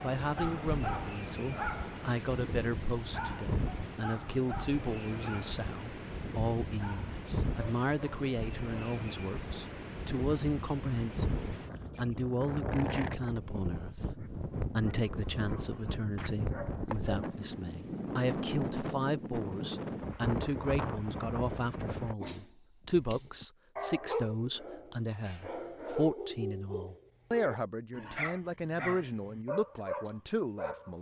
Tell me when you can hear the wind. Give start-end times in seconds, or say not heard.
0.0-22.1.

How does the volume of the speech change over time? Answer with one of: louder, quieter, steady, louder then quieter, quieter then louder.
steady.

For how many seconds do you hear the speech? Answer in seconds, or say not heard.
31 s.